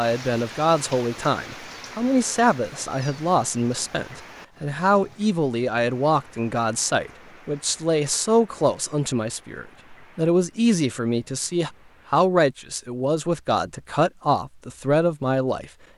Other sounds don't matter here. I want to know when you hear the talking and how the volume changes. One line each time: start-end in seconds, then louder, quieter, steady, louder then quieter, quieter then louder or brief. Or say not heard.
0.0-15.7 steady.